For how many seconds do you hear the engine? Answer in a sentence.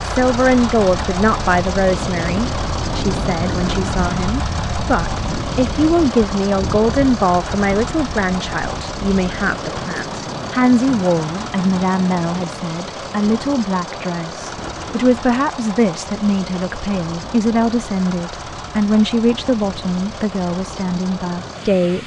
The engine can be heard for 22 seconds in total.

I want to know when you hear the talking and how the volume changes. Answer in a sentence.
You can hear the talking from 0.0 to 22.0 s, at a steady volume.